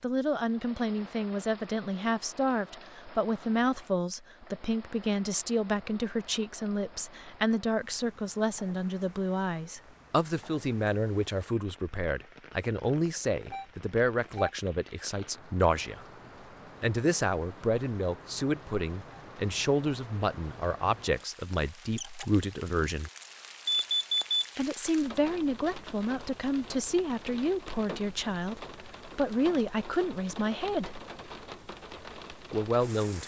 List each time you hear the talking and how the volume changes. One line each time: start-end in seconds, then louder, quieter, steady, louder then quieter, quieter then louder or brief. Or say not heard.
0.0-16.1 steady
16.8-23.1 steady
24.6-31.0 steady
32.5-33.2 brief.